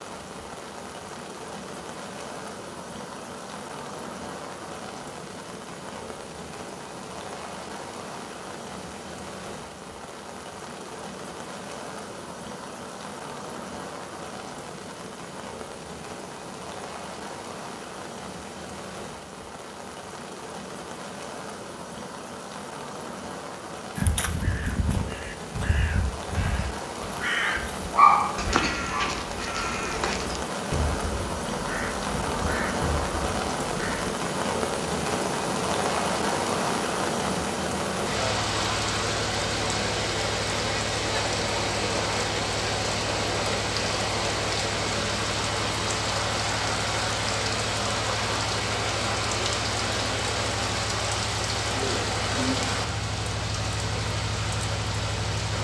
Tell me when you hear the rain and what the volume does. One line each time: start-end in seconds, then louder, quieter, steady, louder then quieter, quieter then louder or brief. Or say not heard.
0.0-55.5 louder.